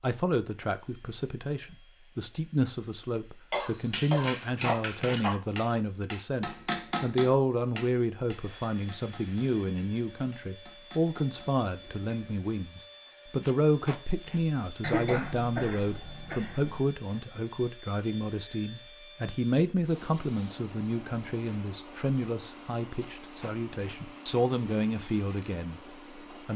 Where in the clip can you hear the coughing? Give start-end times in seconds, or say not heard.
3.5-5.3, 14.8-16.8.